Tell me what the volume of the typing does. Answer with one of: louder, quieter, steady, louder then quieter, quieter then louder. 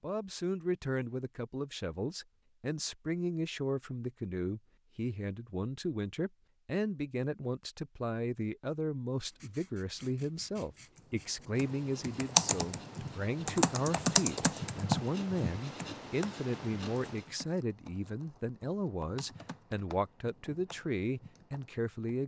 quieter.